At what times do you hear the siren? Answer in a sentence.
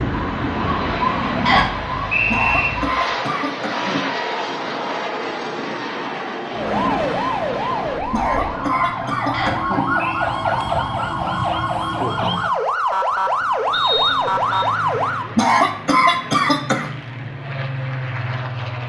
You can hear the siren from 0.0 to 3.0 s and from 6.5 to 15.3 s.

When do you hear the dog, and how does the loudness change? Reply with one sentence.
You can't hear the dog here.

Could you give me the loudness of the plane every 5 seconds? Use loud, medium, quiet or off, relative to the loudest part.
loud, loud, medium, loud.